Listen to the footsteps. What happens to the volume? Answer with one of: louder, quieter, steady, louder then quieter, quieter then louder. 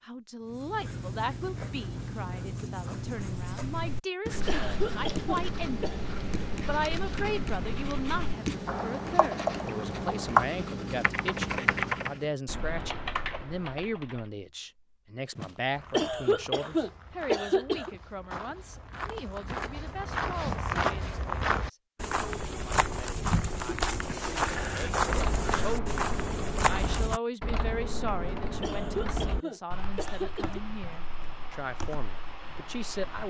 louder.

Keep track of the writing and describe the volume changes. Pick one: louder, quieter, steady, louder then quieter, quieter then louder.
steady.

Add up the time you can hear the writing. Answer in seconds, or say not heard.
12 s.